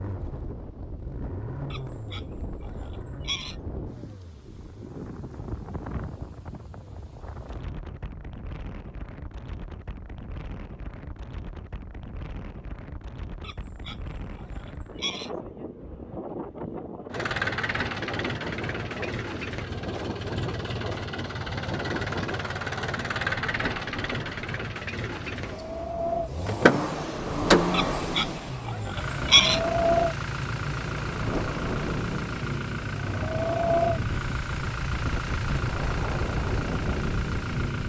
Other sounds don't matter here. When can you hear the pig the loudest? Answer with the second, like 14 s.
29 s.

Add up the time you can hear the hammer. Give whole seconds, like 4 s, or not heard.
not heard.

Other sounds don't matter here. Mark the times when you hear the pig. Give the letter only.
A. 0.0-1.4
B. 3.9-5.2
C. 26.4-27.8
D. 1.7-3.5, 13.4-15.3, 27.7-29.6
D.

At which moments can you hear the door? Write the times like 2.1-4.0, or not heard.
26.4-27.8.